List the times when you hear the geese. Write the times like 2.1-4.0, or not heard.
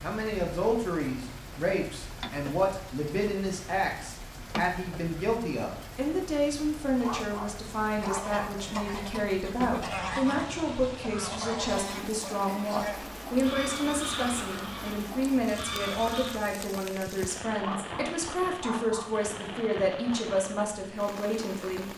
7.8-16.4.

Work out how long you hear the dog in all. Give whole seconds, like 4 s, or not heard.
3 s.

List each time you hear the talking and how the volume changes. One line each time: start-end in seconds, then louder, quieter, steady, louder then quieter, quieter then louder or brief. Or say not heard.
0.0-21.9 steady.